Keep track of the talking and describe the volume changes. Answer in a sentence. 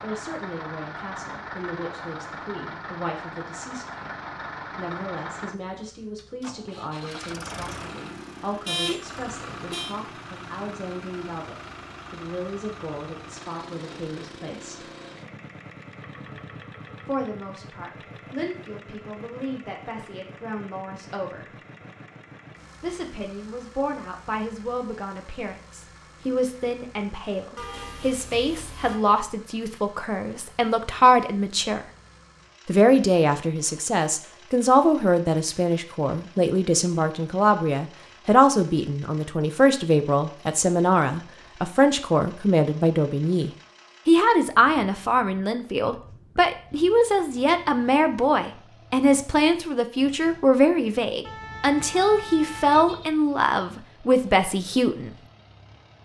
The volume of the talking goes up.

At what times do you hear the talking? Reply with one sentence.
You can hear the talking from 0.0 to 14.8 s, from 17.1 to 21.6 s, from 22.8 to 31.9 s and from 32.6 to 55.1 s.